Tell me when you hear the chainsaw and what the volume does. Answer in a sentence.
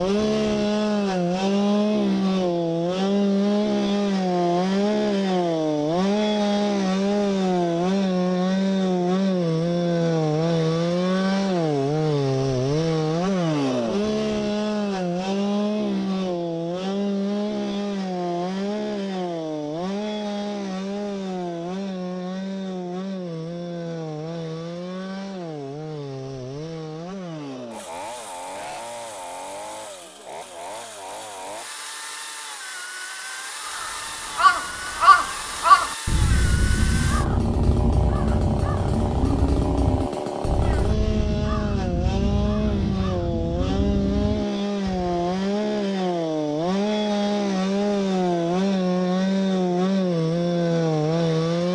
You can hear the chainsaw from 0.0 to 51.7 s, getting quieter then louder.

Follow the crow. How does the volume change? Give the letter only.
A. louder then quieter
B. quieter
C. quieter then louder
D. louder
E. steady
B.